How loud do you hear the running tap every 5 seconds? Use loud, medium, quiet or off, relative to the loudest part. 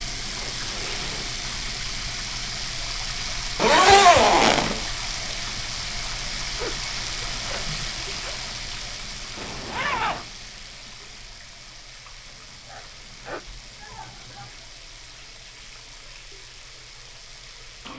loud, loud, quiet, quiet.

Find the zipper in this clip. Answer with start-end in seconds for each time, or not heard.
3.5-4.8, 9.3-10.2.